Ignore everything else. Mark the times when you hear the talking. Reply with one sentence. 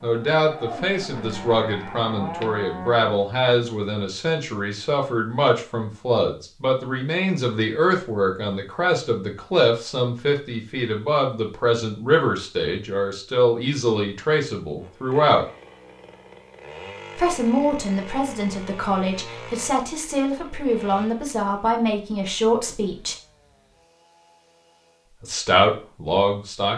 You can hear the talking from 0.0 to 15.4 s, from 17.1 to 23.1 s and from 25.2 to 26.7 s.